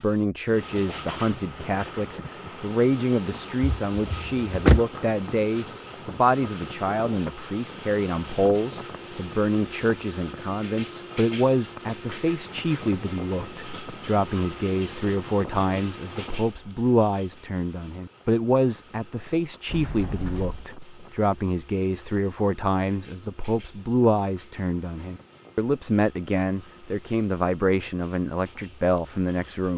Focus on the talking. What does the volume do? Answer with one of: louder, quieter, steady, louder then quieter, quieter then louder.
steady.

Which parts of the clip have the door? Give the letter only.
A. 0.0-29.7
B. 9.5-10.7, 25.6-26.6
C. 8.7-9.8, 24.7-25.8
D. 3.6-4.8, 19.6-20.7
D.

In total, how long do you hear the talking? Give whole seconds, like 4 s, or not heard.
30 s.